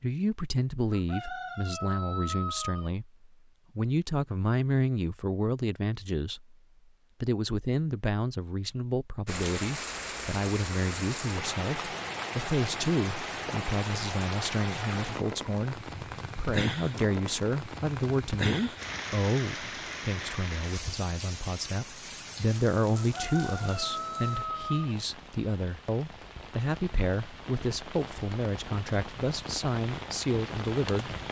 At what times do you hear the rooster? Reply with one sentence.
The rooster can be heard from 0.9 to 2.9 s and from 22.9 to 24.9 s.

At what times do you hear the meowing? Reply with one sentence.
The meowing can't be heard in this clip.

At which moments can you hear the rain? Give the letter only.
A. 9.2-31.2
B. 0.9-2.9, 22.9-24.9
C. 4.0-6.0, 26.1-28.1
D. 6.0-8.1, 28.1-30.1
A.